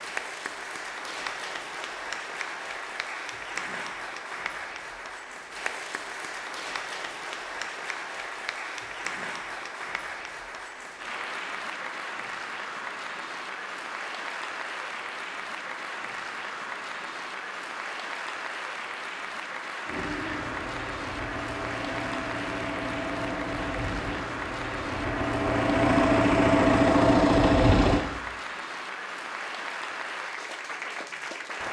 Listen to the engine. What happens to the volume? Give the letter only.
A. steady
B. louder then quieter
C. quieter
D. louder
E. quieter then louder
D.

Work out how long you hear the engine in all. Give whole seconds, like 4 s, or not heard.
8 s.